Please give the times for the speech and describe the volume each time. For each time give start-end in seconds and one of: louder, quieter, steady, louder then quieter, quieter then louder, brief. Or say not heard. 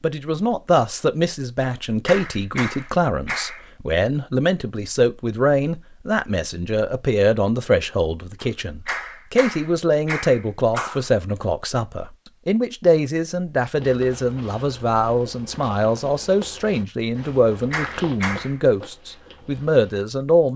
0.0-20.5 steady.